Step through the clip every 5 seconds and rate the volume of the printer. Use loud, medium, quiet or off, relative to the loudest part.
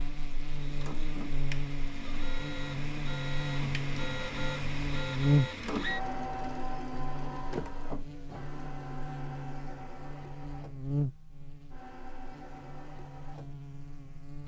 loud, loud, quiet.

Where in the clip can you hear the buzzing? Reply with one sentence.
You can hear the buzzing from 0.0 to 14.4 s.